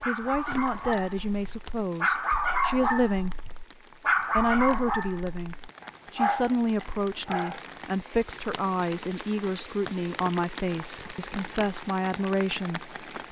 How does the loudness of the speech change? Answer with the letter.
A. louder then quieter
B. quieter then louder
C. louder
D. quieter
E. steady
E.